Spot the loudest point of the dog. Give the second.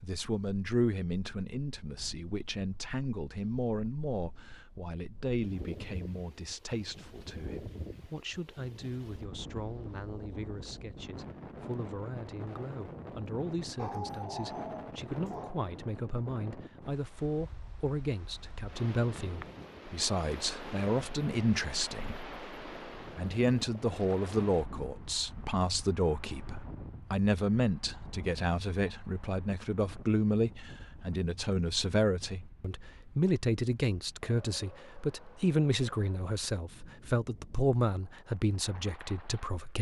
14 s.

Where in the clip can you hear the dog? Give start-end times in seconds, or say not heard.
13.8-15.7.